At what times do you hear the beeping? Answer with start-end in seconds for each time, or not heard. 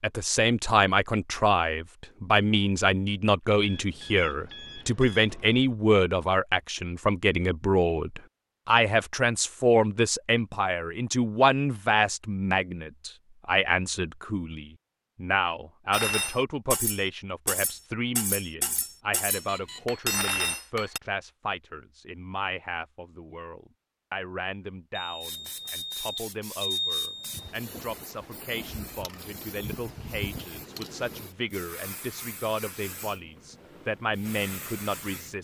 3.6-5.7, 19.2-19.9, 24.9-27.4.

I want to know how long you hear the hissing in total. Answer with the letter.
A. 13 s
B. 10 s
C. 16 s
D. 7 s
B.